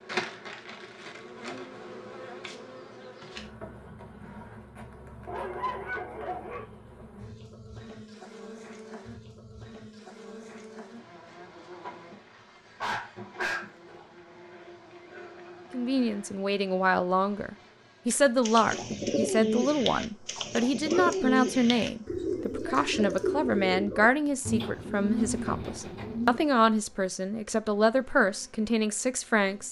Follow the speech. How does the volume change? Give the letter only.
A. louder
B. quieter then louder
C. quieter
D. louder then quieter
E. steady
E.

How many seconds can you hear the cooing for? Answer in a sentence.
You can hear the cooing for 8 seconds altogether.